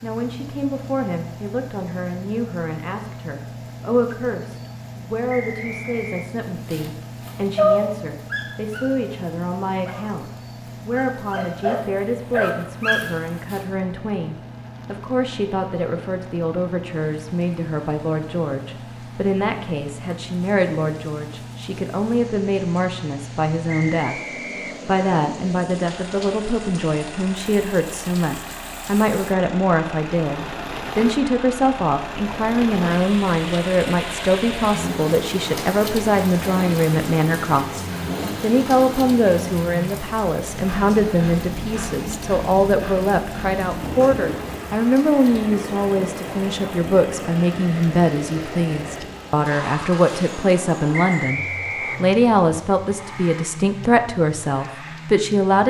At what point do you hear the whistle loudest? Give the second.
51 s.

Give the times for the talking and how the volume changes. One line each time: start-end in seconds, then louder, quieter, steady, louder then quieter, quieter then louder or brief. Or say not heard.
0.0-55.6 louder.